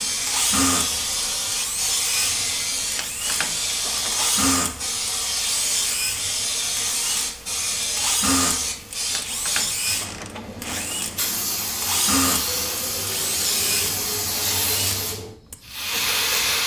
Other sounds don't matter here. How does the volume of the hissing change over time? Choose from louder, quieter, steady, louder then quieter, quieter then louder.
steady.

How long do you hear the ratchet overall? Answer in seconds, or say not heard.
3 s.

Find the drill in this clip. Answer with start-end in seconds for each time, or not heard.
0.0-16.6.